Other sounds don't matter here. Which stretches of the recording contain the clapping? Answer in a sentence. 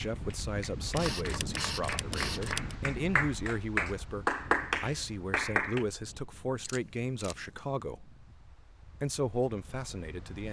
You can hear the clapping from 0.0 to 5.8 s.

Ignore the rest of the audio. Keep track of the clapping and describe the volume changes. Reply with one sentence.
The loudness of the clapping goes up.